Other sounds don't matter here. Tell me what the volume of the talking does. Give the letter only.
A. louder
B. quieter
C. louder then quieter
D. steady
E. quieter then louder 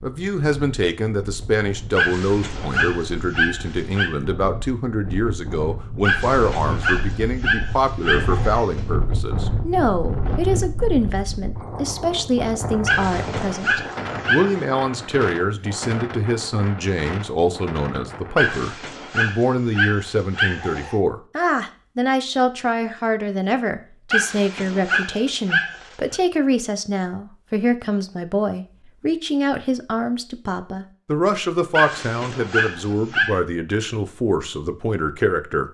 D.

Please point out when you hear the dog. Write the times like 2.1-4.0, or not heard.
1.9-4.1, 6.0-8.8, 12.8-14.6, 18.4-20.9, 24.1-26.1, 31.7-33.4.